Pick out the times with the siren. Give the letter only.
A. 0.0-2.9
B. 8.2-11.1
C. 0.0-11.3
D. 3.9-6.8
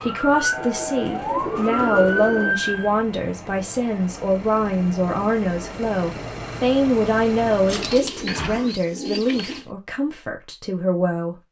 A.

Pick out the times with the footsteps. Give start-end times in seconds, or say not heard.
not heard.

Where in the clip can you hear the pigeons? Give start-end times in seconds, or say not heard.
0.6-2.5, 7.7-9.7.